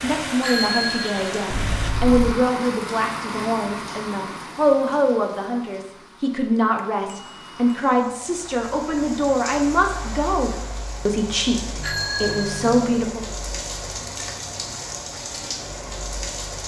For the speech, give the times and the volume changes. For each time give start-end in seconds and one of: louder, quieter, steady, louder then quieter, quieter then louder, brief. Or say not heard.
0.0-13.2 steady.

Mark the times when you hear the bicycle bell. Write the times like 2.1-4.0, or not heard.
0.4-2.4, 6.8-7.5, 11.8-12.7.